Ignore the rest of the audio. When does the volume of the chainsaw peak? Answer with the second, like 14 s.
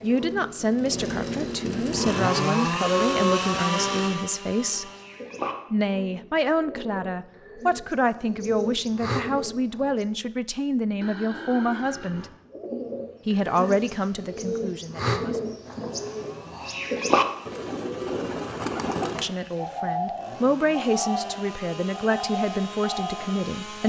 3 s.